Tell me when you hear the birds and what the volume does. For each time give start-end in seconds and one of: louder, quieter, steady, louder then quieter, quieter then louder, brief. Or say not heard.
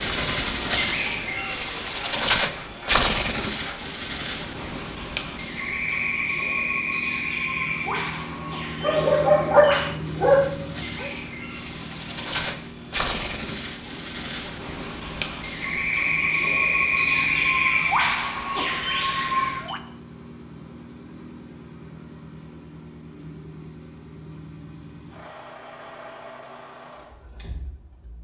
0.0-19.8 quieter then louder.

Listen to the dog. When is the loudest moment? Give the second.
9 s.